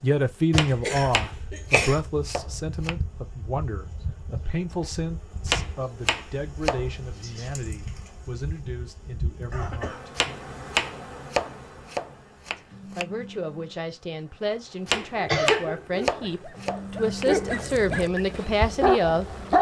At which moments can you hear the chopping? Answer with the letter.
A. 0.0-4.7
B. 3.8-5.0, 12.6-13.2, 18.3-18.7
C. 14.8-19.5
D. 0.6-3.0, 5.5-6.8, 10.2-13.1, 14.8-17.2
D.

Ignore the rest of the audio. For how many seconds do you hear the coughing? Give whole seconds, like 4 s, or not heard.
2 s.